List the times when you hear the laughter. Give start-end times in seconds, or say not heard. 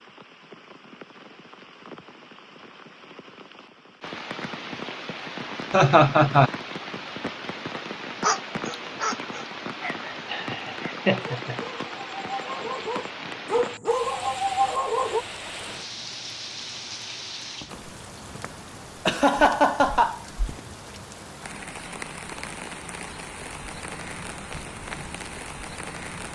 5.7-6.5, 10.3-11.6, 19.1-20.2.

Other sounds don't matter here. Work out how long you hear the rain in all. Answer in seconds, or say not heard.
26 s.